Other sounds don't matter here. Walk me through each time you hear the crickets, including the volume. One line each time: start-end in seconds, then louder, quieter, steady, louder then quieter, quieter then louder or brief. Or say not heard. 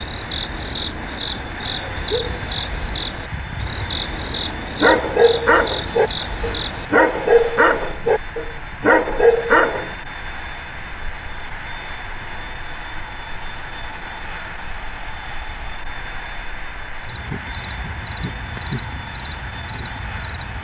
0.0-20.6 steady.